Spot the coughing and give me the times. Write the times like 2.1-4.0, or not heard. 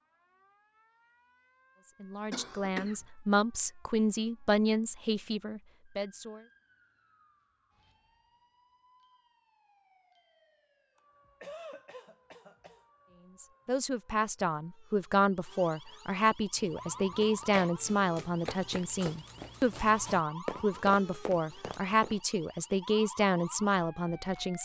2.3-3.0, 10.9-12.8, 17.1-17.7.